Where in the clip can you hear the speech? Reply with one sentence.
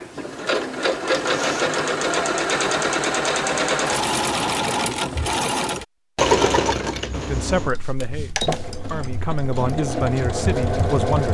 You can hear the speech from 7.1 to 11.2 s.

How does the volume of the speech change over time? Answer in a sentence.
The volume of the speech goes down, then up.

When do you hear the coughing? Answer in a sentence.
The coughing can't be heard in this clip.